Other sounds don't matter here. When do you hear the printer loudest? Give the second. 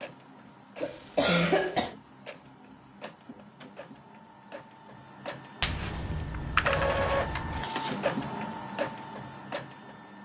7 s.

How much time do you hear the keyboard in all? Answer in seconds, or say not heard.
2 s.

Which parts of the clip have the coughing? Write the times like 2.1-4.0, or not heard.
0.8-1.9.